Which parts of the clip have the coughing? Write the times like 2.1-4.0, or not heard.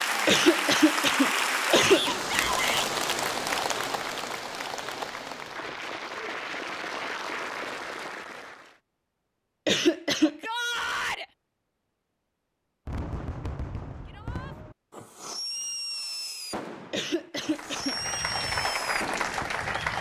0.2-2.1, 9.7-10.4, 16.9-18.0.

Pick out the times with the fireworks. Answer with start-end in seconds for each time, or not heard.
12.8-19.8.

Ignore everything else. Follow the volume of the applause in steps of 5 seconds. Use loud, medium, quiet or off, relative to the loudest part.
loud, medium, off, loud.